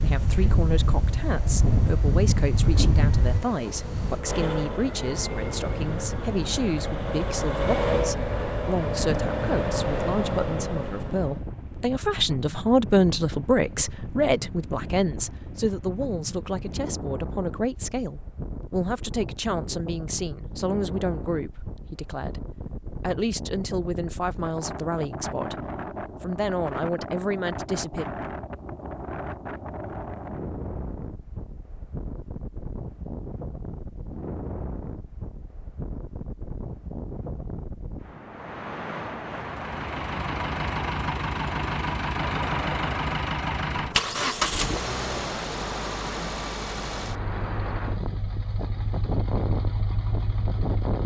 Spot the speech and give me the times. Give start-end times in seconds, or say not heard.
0.0-28.1.